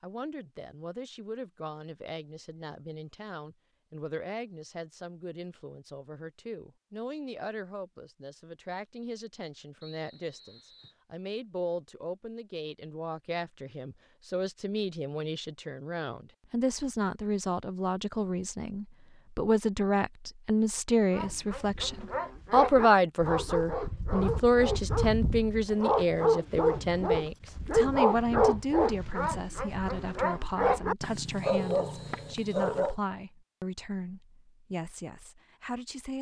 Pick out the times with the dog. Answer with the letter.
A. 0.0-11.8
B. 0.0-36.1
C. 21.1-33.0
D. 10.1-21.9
C.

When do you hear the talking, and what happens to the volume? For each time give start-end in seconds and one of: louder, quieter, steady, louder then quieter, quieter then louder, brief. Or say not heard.
0.0-36.1 louder then quieter.